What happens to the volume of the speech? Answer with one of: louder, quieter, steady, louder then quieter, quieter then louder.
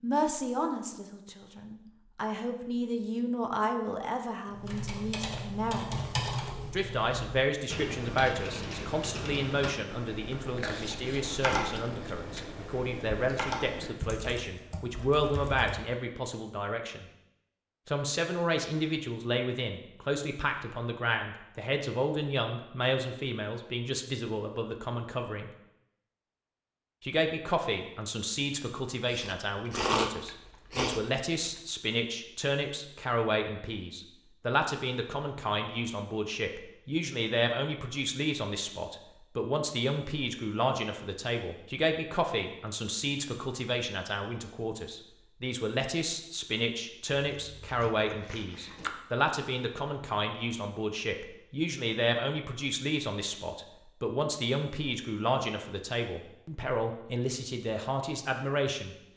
steady.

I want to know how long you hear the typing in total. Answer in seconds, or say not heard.
11 s.